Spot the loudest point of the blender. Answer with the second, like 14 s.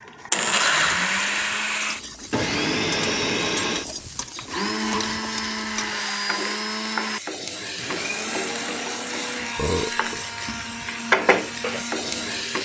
1 s.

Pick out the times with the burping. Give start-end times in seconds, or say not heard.
9.6-10.2.